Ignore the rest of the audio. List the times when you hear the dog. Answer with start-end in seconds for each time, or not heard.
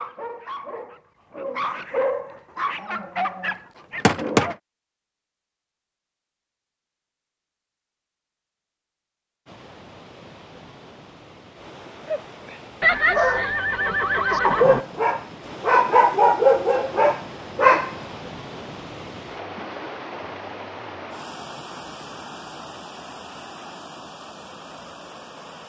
0.0-4.5, 12.1-17.9.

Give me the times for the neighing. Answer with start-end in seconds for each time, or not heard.
12.8-14.8.